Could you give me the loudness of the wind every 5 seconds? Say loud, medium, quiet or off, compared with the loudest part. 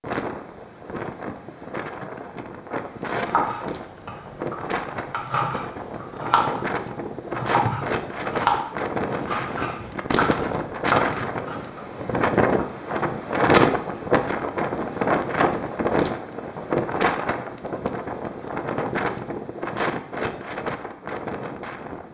medium, medium, loud, loud, medium.